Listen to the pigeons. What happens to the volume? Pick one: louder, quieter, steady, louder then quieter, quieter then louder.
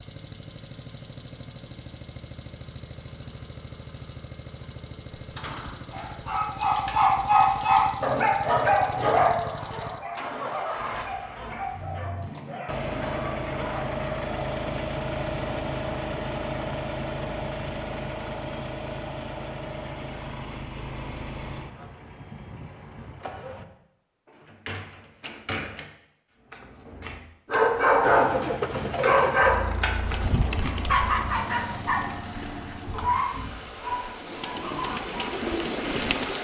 quieter then louder.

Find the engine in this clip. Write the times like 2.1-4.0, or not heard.
0.0-23.6, 28.0-36.3.